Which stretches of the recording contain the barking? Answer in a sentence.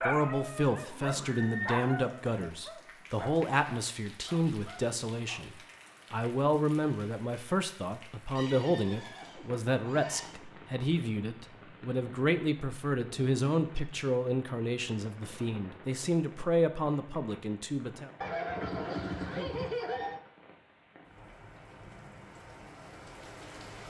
The barking can be heard from 0.0 to 5.5 s.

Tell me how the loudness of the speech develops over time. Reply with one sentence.
The volume of the speech stays about the same.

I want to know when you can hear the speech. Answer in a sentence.
You can hear the speech from 0.0 to 18.1 s.